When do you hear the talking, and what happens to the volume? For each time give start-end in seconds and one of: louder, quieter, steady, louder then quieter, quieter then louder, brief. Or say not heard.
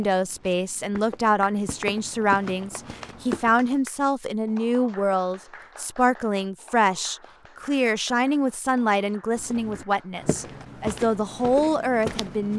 0.0-12.5 steady.